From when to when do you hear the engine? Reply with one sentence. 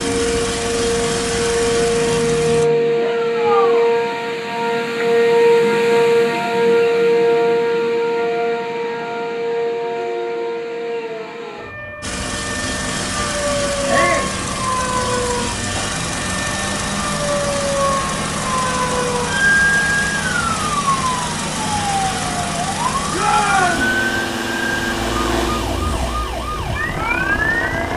The engine can be heard from 0.0 to 2.6 s and from 12.0 to 27.9 s.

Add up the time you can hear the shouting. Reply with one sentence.
The shouting can be heard for 2 seconds in total.